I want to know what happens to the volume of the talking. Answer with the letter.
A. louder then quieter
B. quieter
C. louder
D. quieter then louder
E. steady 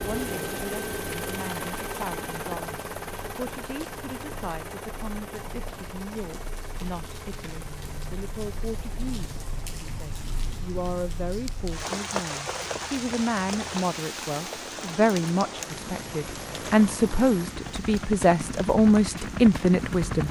C.